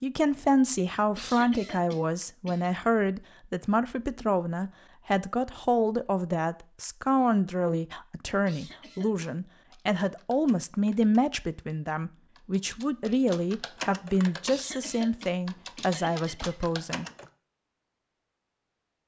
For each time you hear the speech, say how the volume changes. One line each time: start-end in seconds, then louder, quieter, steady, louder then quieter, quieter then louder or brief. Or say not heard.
0.0-17.1 steady.